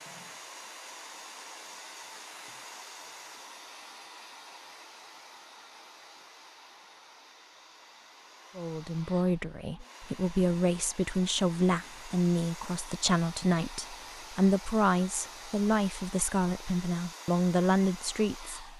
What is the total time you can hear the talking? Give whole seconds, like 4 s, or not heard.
10 s.